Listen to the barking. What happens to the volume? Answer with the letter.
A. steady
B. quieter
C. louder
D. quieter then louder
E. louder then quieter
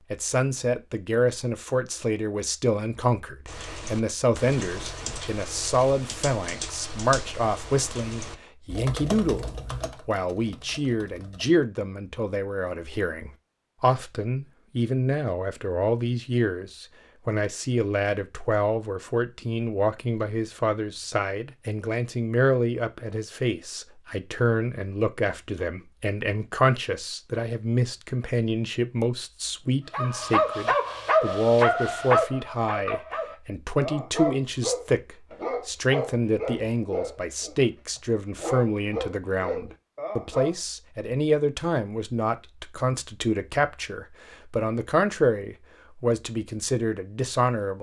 B.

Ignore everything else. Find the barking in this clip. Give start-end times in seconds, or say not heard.
29.9-40.5.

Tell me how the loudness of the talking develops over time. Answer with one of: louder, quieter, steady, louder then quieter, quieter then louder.
steady.